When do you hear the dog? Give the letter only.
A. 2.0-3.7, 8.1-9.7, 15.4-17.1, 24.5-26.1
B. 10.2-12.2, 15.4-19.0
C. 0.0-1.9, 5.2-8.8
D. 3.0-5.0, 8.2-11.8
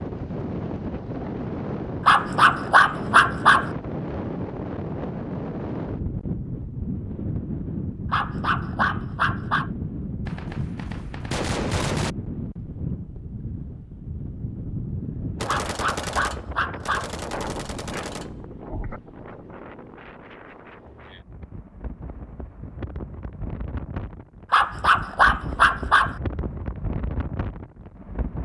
A.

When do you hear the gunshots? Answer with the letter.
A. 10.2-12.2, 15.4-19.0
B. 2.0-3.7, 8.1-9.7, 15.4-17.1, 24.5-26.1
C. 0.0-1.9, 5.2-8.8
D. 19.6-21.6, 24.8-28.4
A.